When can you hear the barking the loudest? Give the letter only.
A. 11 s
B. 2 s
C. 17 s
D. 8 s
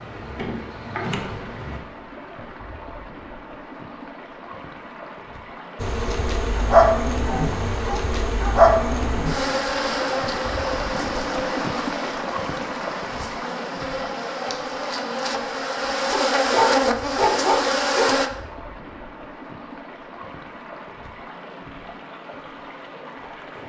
C.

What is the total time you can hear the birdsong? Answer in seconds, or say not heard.
not heard.